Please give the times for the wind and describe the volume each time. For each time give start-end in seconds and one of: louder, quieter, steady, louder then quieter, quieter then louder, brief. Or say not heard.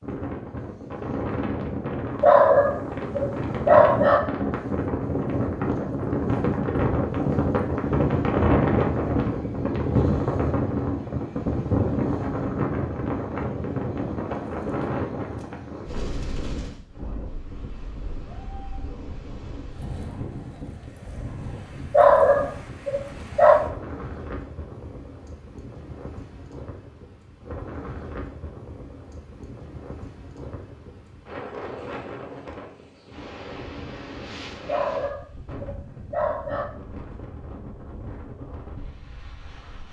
0.0-39.8 quieter.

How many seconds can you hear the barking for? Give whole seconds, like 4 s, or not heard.
6 s.